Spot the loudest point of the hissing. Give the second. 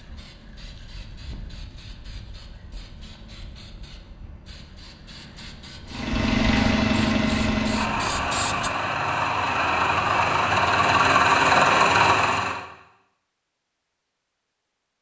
8 s.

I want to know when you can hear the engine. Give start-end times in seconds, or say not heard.
5.8-12.7.